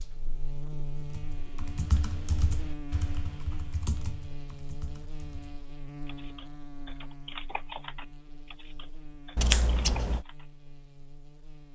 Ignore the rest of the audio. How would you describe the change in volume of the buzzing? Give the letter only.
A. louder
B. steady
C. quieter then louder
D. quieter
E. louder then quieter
D.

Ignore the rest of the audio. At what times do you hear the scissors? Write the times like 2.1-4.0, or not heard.
9.3-10.2.